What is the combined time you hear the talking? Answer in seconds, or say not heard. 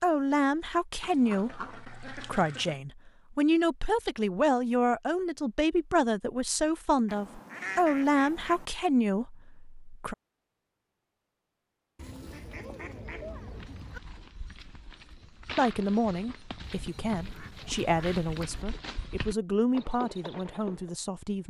16 s.